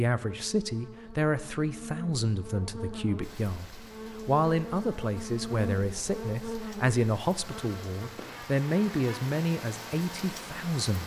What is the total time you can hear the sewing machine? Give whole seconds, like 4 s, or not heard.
not heard.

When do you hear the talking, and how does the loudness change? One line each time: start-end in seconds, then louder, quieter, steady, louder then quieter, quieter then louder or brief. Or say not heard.
0.0-11.0 steady.